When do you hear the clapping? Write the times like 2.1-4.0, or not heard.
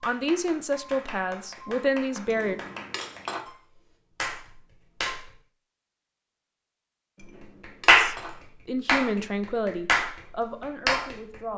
0.0-5.3, 7.2-11.5.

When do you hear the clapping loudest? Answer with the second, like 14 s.
8 s.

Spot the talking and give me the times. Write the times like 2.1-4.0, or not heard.
0.0-2.5, 7.9-11.5.